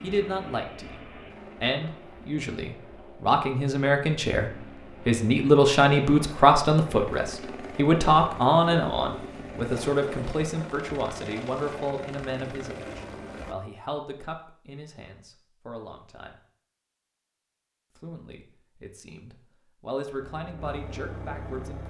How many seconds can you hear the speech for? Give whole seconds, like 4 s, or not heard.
20 s.